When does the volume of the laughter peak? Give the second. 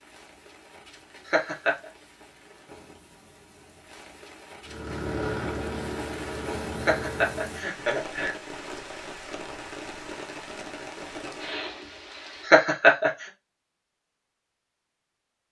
13 s.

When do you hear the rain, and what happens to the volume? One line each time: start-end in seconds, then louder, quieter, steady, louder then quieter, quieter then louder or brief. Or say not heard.
0.0-12.5 louder.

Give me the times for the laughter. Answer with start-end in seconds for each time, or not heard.
1.2-1.9, 6.8-8.3, 12.4-13.1.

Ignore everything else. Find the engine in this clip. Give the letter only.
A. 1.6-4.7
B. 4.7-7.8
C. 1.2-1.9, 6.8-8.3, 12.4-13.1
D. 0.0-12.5
B.